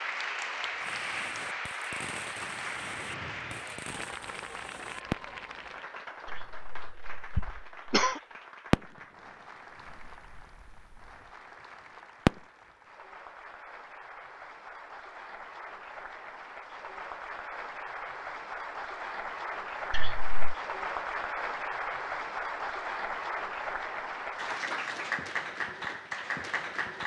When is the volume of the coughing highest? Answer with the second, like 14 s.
8 s.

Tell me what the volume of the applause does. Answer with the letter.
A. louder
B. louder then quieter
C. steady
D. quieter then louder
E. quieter
D.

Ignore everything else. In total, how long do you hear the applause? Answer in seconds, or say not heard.
27 s.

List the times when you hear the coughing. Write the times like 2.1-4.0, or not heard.
6.2-8.2, 19.9-20.6.